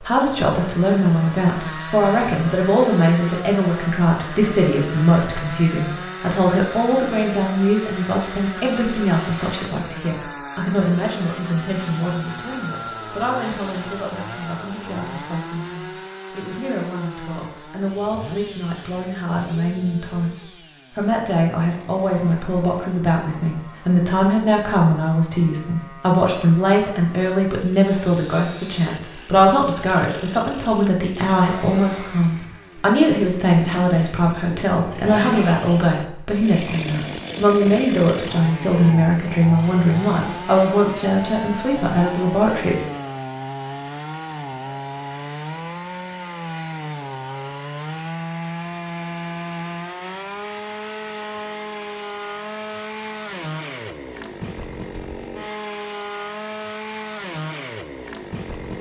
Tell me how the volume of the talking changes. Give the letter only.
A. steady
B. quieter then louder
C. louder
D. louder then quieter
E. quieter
B.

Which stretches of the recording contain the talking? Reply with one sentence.
You can hear the talking from 0.0 to 42.8 s.